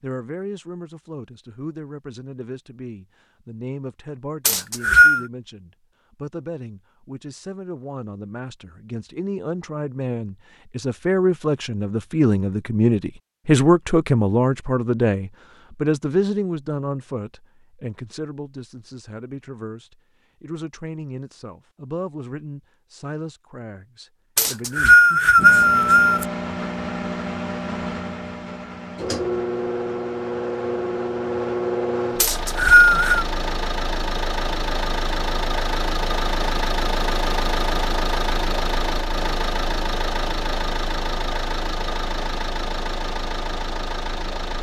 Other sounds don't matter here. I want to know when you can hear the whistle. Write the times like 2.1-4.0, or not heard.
4.5-5.2, 24.4-26.2, 32.2-33.2.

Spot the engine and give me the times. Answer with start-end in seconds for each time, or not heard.
25.4-44.5.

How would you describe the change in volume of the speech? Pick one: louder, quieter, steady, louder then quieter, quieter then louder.
louder then quieter.